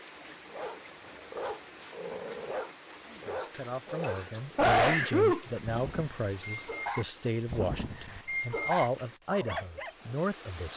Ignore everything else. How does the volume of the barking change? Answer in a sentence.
The loudness of the barking goes up.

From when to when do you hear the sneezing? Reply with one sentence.
The sneezing can be heard from 4.0 to 5.5 s.